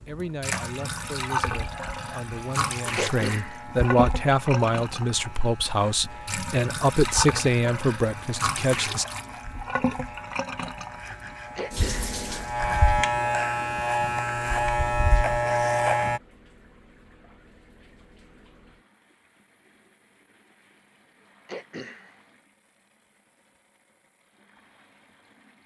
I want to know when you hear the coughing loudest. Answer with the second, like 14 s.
3 s.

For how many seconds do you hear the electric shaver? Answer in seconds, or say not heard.
16 s.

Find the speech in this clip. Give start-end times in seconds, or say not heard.
0.1-9.1.